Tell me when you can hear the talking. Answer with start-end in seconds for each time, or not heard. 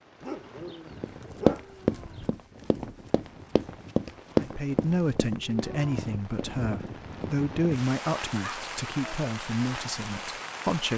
4.3-10.9.